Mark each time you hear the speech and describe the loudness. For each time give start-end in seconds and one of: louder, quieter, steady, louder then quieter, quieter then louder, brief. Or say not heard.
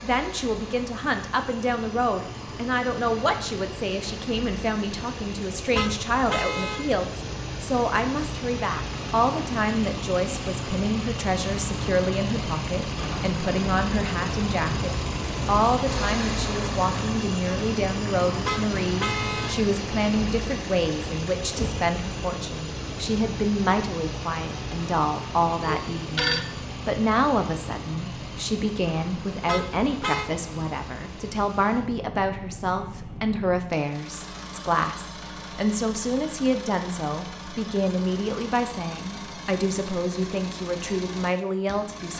0.0-42.1 steady.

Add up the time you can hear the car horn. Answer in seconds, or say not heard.
3 s.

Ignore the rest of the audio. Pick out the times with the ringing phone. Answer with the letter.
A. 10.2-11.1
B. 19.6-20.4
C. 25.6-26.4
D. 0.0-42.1
C.